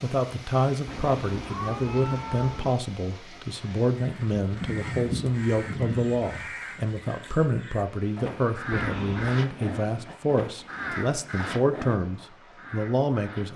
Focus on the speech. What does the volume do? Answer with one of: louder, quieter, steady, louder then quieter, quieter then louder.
steady.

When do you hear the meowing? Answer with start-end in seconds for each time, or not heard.
0.8-2.8, 8.7-9.4.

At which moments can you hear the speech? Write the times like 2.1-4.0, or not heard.
0.0-13.5.